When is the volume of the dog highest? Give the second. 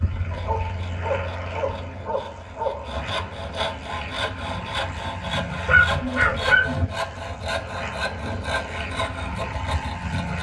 6 s.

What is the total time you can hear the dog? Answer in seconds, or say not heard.
4 s.